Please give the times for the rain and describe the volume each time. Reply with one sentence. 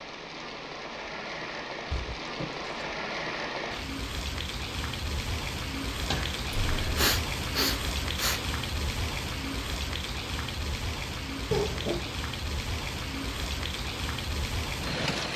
You can hear the rain from 0.0 to 15.3 s, at a steady volume.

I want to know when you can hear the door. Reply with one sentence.
You can hear the door from 1.9 to 2.9 s, from 6.0 to 7.0 s and from 11.5 to 12.1 s.